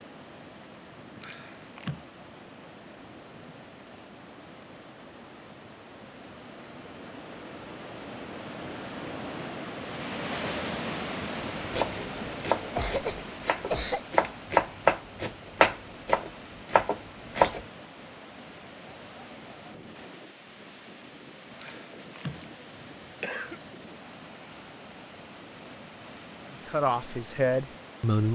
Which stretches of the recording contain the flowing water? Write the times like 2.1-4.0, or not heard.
0.0-28.3.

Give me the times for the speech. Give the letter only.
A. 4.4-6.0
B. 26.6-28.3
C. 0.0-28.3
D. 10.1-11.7
B.